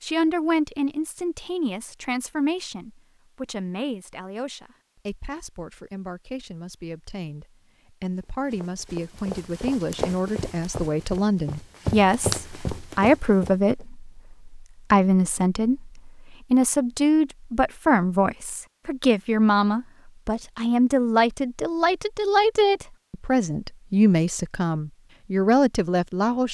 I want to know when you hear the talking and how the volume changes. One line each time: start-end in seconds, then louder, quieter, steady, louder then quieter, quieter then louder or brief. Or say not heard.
0.0-26.4 louder.